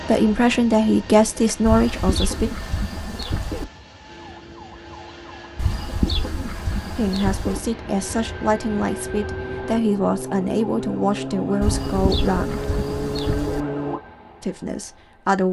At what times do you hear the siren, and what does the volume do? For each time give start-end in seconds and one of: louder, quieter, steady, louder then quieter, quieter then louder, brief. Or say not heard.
4.0-14.0 louder.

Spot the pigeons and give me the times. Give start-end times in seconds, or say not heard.
1.6-3.6, 5.5-7.6, 11.6-13.7.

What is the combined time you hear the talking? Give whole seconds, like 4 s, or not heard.
9 s.